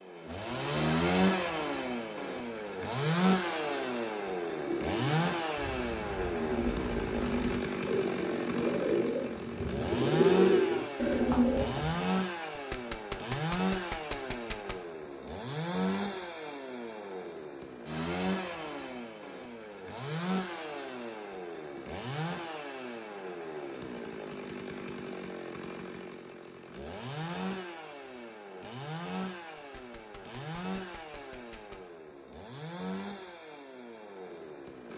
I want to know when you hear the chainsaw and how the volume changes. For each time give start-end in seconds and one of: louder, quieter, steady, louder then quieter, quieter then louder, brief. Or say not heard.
0.1-34.9 quieter.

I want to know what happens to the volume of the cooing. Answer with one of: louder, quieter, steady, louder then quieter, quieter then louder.
louder.